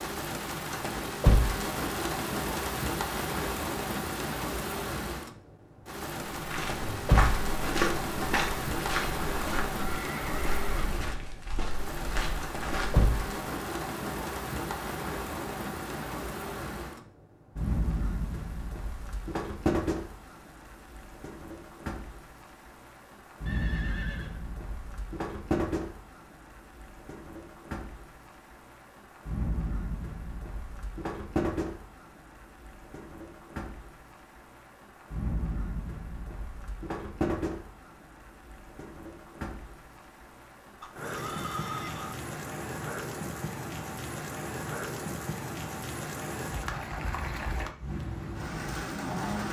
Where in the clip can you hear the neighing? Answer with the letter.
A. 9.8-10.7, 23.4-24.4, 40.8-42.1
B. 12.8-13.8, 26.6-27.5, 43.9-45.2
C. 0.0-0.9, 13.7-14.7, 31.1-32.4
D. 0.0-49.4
A.